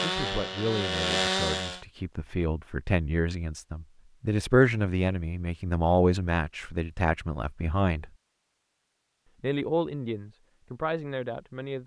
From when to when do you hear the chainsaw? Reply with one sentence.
You can hear the chainsaw from 0.0 to 1.8 s.